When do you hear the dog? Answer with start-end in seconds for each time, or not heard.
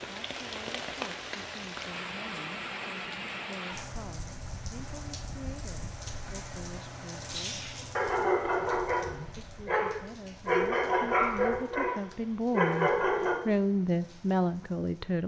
7.3-13.4.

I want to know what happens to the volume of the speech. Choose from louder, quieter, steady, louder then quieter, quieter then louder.
louder.